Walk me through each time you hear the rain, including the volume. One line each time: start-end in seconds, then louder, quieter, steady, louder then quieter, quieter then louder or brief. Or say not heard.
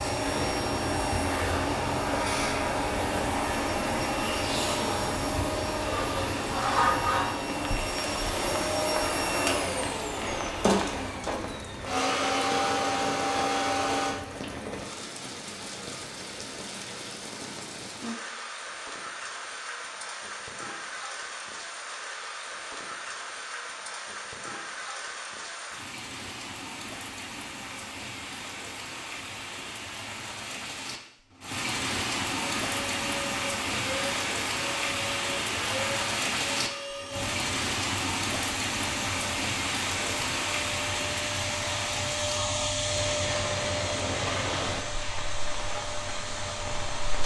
0.0-47.2 louder.